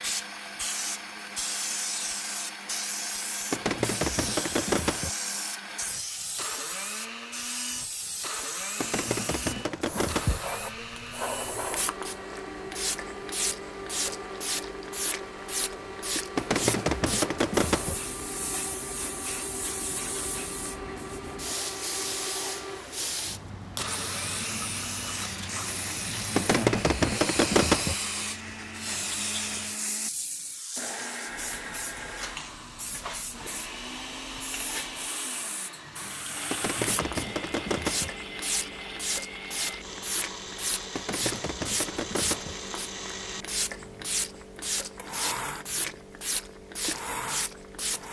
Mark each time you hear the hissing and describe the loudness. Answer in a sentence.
You can hear the hissing from 0.0 to 48.0 s, at a steady volume.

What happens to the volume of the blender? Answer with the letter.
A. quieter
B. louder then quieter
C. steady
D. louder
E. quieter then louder
C.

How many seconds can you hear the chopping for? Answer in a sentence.
You can hear the chopping for 10 seconds altogether.